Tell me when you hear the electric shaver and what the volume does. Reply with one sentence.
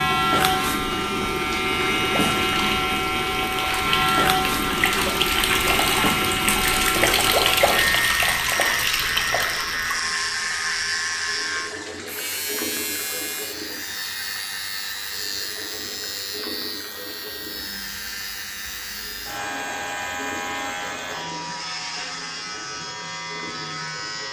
The electric shaver can be heard from 0.0 to 24.2 s, getting quieter.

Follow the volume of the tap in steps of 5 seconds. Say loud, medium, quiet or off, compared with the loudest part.
medium, loud, medium, quiet, quiet.